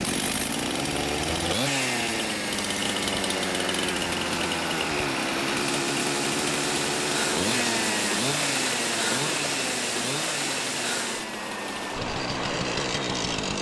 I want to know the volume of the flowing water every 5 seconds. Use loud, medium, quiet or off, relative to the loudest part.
medium, loud, loud.